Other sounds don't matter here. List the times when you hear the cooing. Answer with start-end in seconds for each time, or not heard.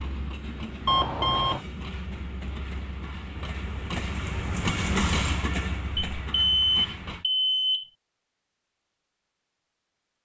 not heard.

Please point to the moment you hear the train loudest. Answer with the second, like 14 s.
5 s.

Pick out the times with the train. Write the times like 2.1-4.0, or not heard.
0.0-7.2.